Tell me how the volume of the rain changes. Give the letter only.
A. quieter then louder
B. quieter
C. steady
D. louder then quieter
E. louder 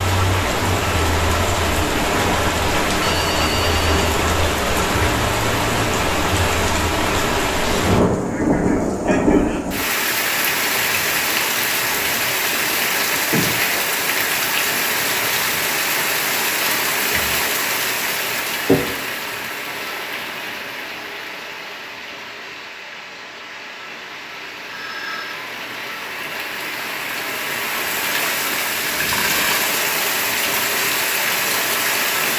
A.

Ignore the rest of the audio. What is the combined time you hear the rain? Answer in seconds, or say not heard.
32 s.